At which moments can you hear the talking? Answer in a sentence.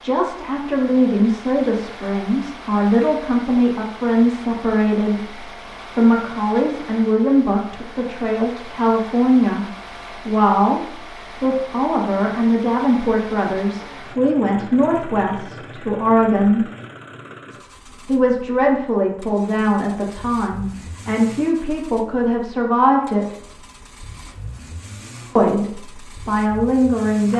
You can hear the talking from 0.0 to 16.6 s, from 18.1 to 23.4 s and from 25.4 to 27.3 s.